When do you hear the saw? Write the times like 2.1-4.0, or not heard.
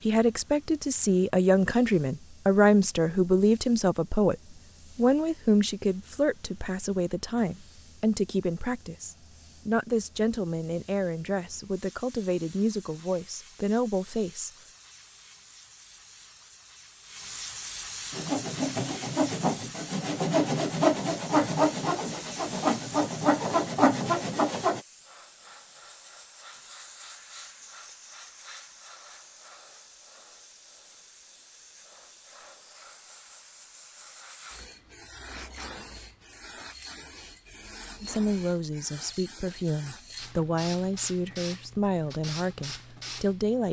18.1-24.8.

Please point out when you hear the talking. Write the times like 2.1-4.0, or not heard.
0.0-14.5, 38.0-43.6.